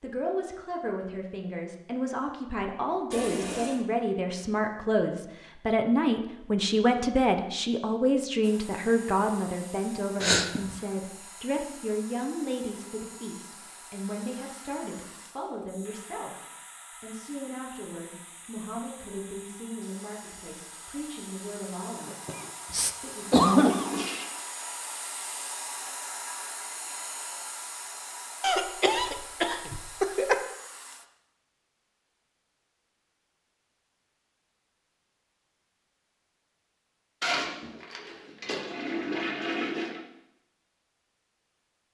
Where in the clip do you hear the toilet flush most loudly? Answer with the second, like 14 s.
39 s.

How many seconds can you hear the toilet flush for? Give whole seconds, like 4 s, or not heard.
4 s.